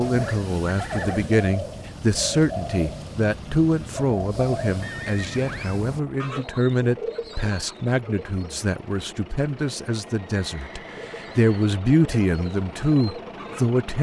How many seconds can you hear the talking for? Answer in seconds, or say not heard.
14 s.